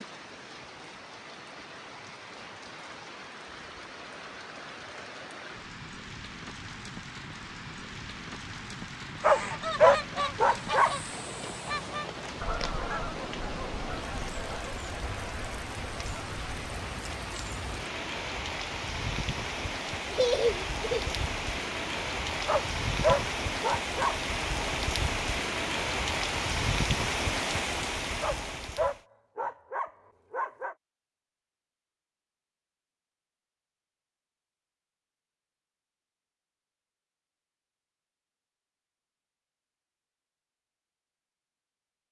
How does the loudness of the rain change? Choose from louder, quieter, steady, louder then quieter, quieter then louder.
louder.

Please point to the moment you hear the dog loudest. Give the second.
10 s.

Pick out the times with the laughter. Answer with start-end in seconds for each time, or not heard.
20.1-21.1.